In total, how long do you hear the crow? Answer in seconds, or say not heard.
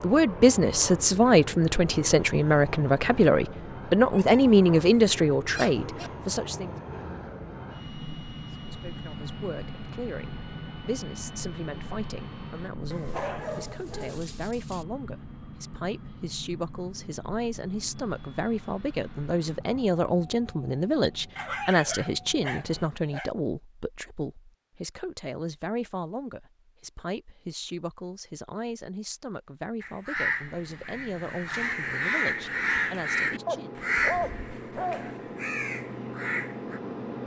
7 s.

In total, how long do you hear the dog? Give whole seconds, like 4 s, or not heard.
8 s.